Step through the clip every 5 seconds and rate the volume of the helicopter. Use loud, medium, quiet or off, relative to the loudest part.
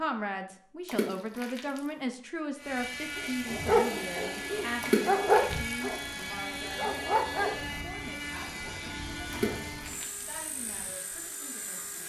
loud, loud, medium.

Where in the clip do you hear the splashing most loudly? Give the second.
5 s.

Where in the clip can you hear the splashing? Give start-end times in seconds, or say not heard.
0.8-1.8, 4.8-5.8, 9.3-10.2.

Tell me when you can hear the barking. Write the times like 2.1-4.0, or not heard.
3.1-9.7.